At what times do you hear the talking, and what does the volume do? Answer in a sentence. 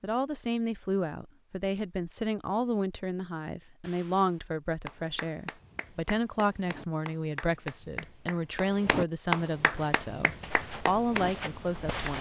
The talking can be heard from 0.0 to 12.1 s, at a steady volume.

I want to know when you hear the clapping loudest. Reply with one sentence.
The loudest moment of the clapping is at 9 seconds.